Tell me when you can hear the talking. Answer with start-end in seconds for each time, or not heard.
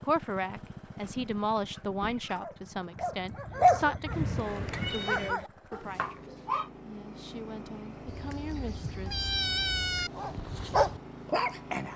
0.0-9.2.